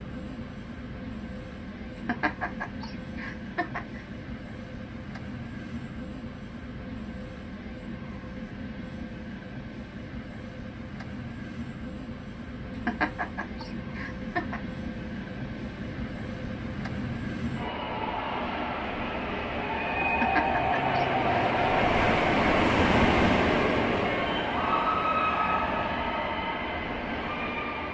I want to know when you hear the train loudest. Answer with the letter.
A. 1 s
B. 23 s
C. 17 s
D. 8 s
B.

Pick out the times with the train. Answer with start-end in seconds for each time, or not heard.
0.0-27.8.